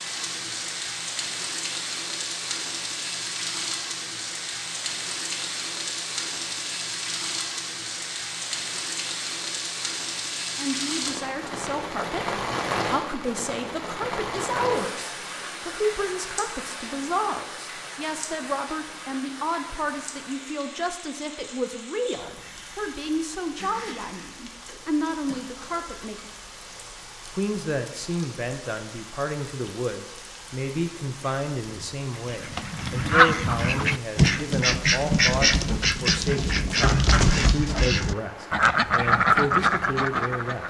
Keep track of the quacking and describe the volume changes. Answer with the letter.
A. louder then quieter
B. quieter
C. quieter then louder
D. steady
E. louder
D.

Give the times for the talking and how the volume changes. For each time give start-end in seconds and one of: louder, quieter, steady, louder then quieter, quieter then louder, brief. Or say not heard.
10.6-26.1 steady
27.3-40.6 steady.